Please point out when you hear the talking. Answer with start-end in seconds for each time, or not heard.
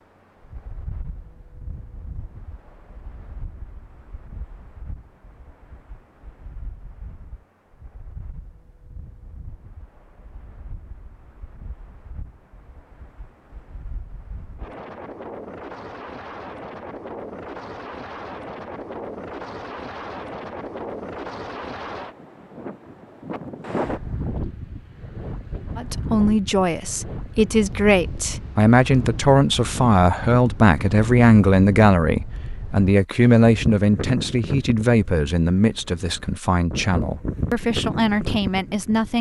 25.8-39.1.